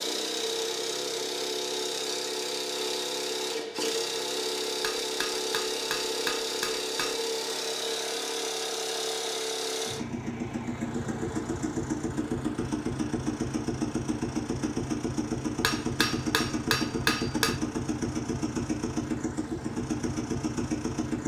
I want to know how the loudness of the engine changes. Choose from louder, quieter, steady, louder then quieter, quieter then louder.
steady.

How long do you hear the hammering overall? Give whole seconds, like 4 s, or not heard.
4 s.